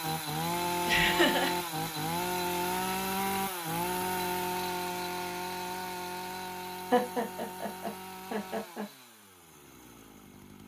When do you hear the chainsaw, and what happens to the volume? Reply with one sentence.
You can hear the chainsaw from 0.0 to 10.6 s, getting quieter.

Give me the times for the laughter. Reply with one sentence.
You can hear the laughter from 0.8 to 1.6 s and from 6.9 to 8.8 s.